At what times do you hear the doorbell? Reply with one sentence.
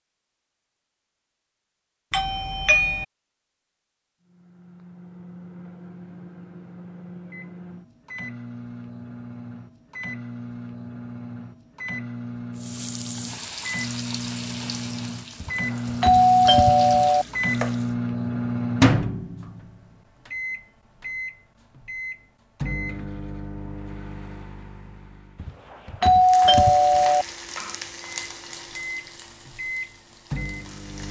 The doorbell can be heard from 2.1 to 3.0 s, from 15.4 to 17.2 s and from 25.4 to 27.2 s.